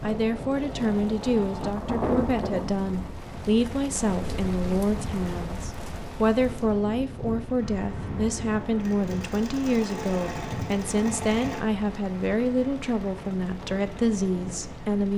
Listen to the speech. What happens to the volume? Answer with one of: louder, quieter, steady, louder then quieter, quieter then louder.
steady.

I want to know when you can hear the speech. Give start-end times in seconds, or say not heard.
0.0-15.1.